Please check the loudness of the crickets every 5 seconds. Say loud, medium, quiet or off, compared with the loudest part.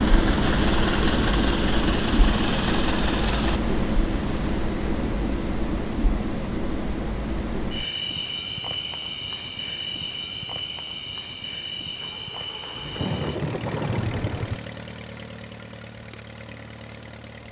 loud, loud, medium, medium.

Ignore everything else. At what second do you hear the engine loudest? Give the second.
1 s.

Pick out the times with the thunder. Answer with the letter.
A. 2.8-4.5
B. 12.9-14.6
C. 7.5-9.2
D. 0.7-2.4
B.